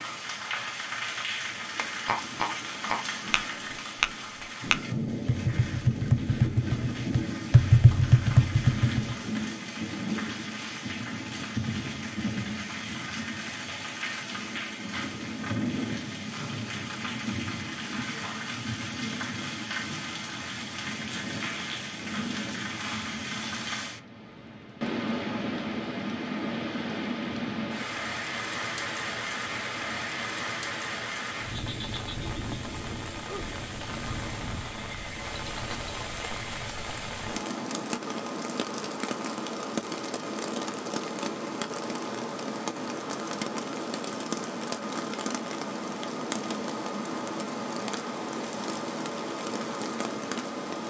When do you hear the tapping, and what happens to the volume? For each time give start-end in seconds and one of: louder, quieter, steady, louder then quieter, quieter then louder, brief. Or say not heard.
1.8-9.4 louder.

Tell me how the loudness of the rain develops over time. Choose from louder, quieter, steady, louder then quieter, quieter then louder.
steady.